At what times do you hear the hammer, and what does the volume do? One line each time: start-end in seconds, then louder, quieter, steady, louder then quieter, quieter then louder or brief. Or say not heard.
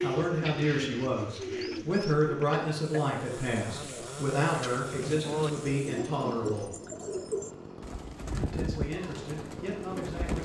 not heard.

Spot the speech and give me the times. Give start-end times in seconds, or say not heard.
0.0-6.7, 8.3-10.4.